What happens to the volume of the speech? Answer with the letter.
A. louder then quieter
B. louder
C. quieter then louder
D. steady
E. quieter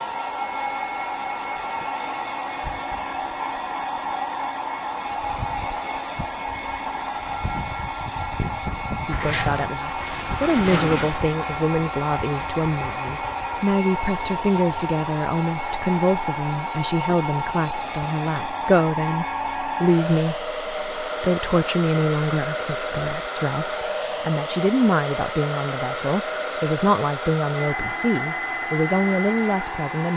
D.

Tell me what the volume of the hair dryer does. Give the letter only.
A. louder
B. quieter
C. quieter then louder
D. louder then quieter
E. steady
E.